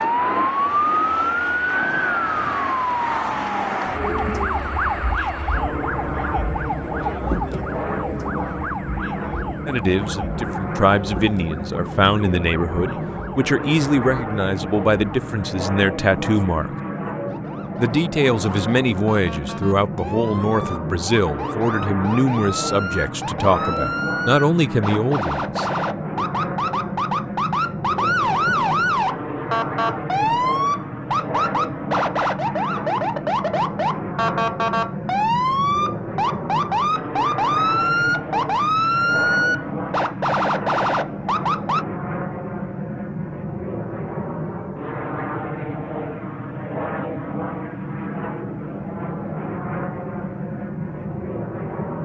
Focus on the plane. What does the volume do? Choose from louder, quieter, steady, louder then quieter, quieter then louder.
steady.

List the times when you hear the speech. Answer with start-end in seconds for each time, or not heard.
9.7-16.7, 17.8-25.6.